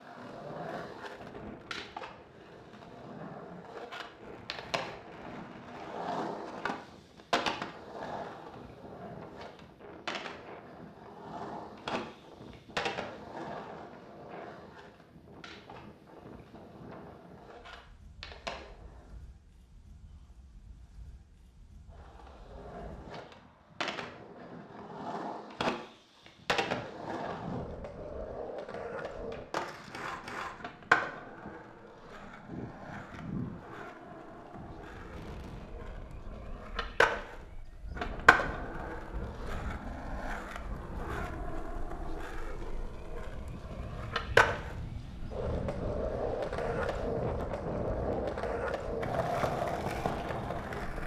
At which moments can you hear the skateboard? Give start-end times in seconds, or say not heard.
0.0-19.1, 21.9-51.0.